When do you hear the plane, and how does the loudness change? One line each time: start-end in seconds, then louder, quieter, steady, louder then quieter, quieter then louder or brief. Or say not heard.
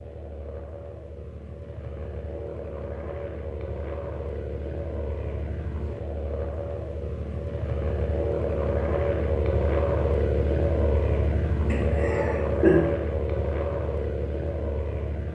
0.0-15.3 louder.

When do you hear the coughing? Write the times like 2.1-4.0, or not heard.
11.7-12.9.